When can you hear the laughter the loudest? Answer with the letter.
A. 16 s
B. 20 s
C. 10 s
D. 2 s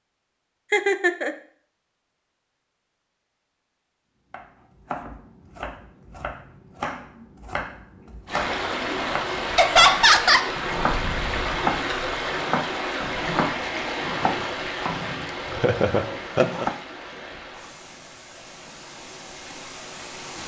C.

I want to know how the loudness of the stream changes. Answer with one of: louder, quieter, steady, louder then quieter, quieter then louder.
quieter.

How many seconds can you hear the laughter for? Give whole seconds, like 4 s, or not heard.
3 s.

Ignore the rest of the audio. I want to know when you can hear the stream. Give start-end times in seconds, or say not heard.
8.2-20.4.